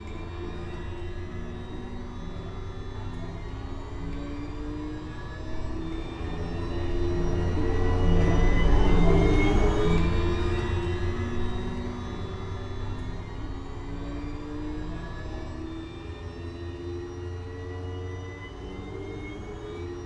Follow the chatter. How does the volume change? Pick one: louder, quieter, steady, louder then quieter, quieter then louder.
louder then quieter.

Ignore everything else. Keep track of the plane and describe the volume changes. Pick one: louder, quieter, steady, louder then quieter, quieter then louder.
louder then quieter.